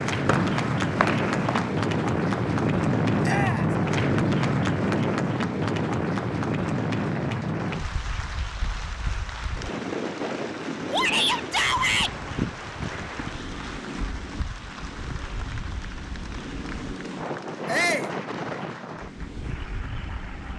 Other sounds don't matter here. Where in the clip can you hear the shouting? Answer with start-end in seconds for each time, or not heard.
3.2-3.8, 10.9-12.1, 17.6-18.1.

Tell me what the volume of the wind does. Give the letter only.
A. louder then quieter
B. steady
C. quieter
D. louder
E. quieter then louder
C.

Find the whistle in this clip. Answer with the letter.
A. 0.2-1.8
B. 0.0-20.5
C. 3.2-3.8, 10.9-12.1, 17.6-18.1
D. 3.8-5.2
A.